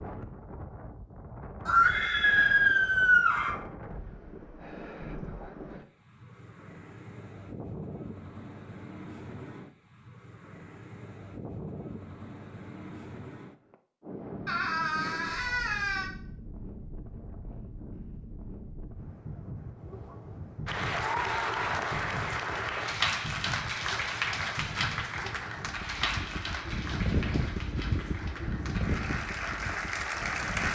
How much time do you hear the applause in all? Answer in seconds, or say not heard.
10 s.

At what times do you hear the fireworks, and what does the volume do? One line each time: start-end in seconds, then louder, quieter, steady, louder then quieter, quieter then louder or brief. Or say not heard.
not heard.